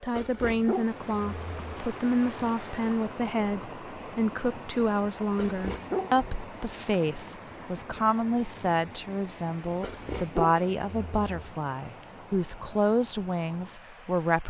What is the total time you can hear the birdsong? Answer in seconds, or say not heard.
not heard.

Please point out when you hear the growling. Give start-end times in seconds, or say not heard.
0.1-1.9, 5.3-6.5, 9.8-11.5.